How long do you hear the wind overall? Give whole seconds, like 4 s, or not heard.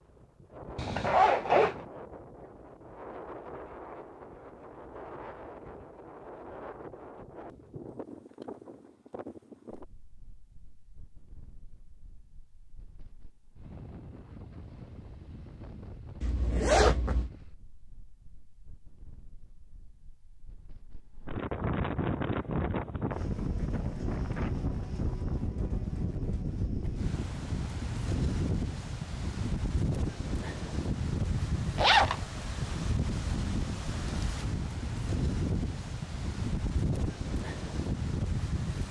39 s.